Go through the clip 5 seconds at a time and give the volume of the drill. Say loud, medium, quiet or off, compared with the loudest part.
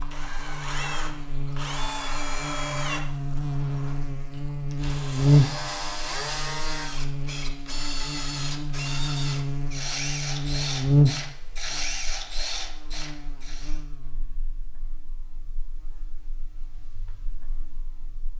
loud, loud, loud, off.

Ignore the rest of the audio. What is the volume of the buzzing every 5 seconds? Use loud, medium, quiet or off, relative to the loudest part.
medium, loud, loud, quiet.